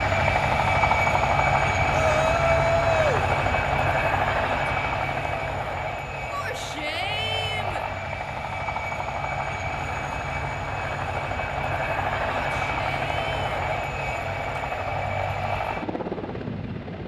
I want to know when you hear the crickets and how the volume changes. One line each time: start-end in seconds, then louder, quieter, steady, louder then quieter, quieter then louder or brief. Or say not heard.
not heard.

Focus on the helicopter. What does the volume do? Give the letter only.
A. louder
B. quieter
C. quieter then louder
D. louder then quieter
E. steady
B.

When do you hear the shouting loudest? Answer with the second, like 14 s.
3 s.